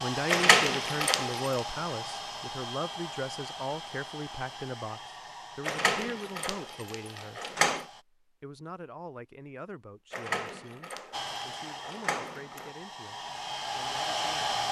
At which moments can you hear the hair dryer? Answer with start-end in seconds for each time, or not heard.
0.0-8.1, 11.1-14.6.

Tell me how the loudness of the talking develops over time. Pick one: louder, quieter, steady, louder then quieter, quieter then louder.
quieter.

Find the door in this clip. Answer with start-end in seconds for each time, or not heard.
0.2-1.5, 5.7-7.8, 10.1-12.7.